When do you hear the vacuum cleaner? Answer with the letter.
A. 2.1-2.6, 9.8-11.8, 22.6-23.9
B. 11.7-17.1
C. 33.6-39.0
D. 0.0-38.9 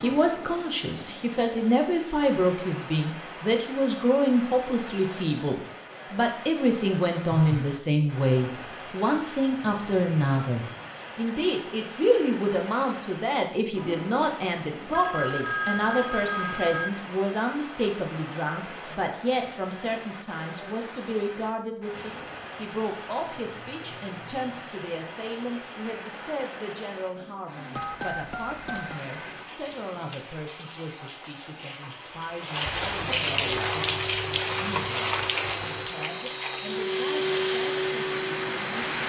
C.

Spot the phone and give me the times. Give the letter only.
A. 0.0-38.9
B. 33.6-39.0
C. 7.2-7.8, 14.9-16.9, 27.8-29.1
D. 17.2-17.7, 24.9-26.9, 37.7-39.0
C.